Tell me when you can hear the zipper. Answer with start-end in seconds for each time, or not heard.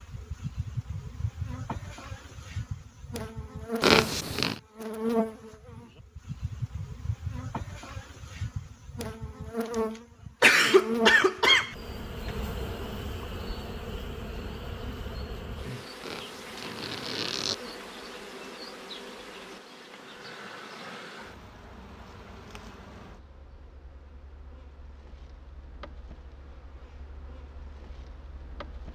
3.8-4.6, 16.0-17.6.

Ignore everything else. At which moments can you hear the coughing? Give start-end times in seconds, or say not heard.
10.4-11.8.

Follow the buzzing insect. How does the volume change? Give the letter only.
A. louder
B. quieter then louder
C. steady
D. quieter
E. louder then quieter
D.